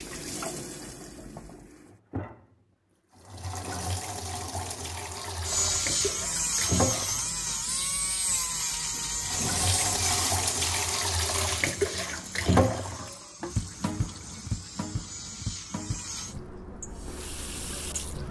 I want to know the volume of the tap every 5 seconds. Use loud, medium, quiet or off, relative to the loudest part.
medium, loud, loud, medium.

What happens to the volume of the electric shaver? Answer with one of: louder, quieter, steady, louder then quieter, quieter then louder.
quieter.